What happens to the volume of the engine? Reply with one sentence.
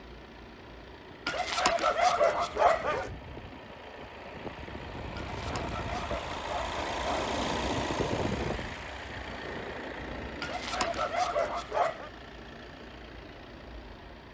The volume of the engine goes up, then down.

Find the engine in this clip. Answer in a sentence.
You can hear the engine from 0.0 to 14.2 s.